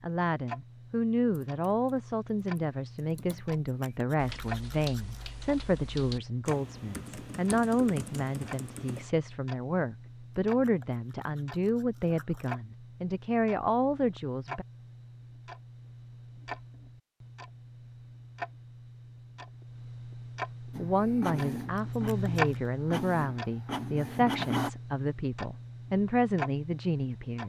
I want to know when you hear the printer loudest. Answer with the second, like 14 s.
24 s.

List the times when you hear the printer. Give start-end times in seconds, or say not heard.
20.7-24.7.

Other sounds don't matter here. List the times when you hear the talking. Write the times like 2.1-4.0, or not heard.
0.0-14.7, 20.8-27.4.